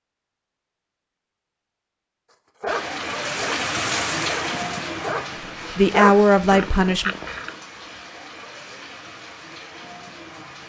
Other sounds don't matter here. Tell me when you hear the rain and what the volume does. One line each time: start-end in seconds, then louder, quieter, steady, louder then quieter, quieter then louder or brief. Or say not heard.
2.6-10.6 quieter.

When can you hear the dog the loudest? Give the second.
6 s.